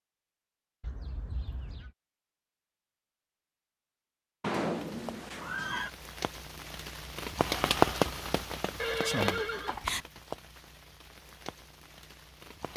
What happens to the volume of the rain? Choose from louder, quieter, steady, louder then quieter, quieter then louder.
louder then quieter.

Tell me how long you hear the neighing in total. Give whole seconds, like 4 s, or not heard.
4 s.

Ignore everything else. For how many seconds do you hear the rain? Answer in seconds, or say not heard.
8 s.